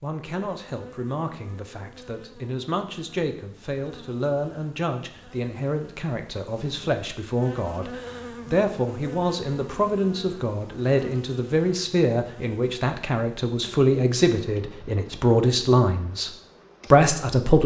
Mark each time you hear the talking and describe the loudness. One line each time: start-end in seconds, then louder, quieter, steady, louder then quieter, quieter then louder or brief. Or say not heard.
0.0-16.3 louder
16.9-17.6 brief.